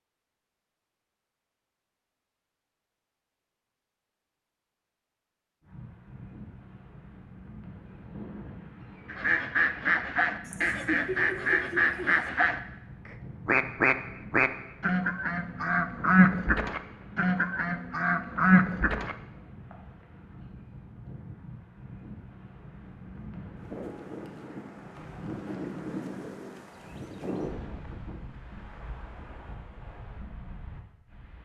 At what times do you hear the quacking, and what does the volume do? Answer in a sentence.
You can hear the quacking from 9.1 to 19.1 s, at a steady volume.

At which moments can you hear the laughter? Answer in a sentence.
You can hear the laughter from 10.4 to 12.3 s.